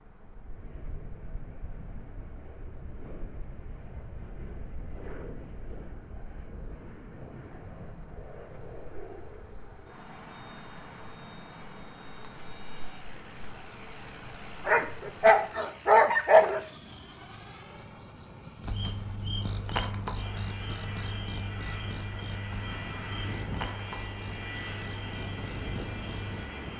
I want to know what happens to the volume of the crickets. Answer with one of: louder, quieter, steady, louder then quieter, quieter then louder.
louder then quieter.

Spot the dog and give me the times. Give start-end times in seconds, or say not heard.
14.7-16.6.